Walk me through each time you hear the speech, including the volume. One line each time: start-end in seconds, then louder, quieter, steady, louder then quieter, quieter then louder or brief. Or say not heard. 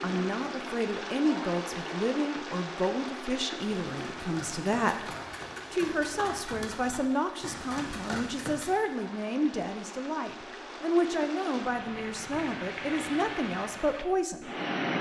0.0-14.6 steady.